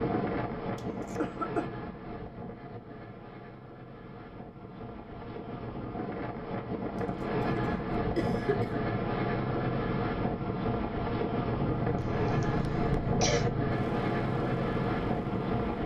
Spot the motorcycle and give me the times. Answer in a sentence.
The motorcycle can be heard from 11.6 to 15.8 s.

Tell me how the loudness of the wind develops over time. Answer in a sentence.
The loudness of the wind goes up.